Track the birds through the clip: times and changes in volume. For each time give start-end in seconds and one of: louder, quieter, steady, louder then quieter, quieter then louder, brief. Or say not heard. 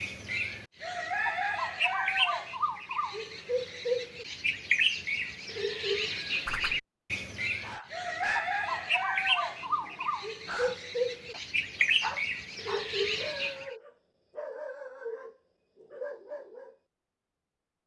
0.0-13.8 steady.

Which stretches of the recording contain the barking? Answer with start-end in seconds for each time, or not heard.
7.6-8.9, 9.6-16.8.